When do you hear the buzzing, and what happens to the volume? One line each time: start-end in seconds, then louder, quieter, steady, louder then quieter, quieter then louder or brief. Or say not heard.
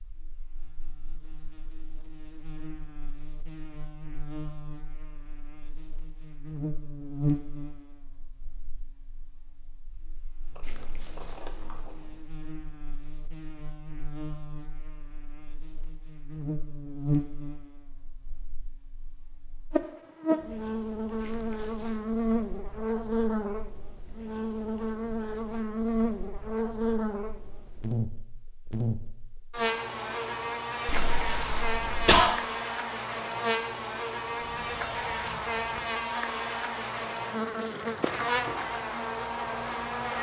0.0-40.1 quieter then louder.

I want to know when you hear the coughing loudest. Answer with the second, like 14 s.
32 s.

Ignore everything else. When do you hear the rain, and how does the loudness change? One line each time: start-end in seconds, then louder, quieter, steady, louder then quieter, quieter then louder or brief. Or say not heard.
not heard.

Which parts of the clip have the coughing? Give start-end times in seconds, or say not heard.
10.6-11.6, 21.2-22.1, 30.9-32.4.